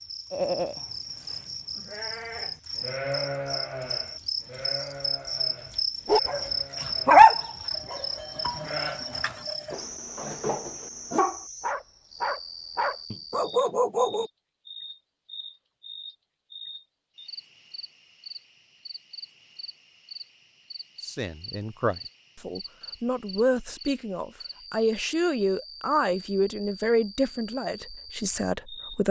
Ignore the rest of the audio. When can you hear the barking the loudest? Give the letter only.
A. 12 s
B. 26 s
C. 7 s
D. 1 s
C.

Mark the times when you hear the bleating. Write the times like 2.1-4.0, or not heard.
0.3-9.8.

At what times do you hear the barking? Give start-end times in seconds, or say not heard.
6.0-14.3.